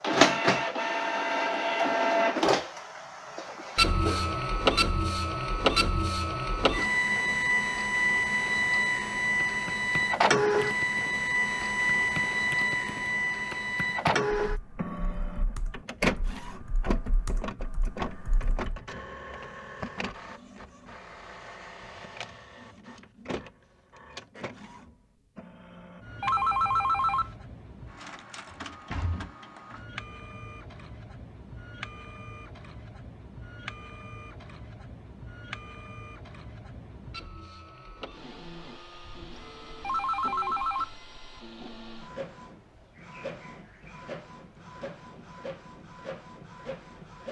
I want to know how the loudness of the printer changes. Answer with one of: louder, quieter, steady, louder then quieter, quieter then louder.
quieter.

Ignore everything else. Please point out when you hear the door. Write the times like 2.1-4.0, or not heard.
28.4-29.3.